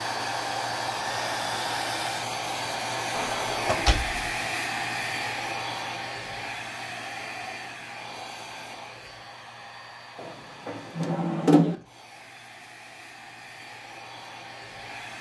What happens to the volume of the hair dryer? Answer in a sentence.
The loudness of the hair dryer goes down.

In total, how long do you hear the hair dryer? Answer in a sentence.
The hair dryer can be heard for 15 seconds in total.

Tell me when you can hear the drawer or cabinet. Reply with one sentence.
The drawer or cabinet can be heard from 3.1 to 4.2 s and from 10.2 to 11.8 s.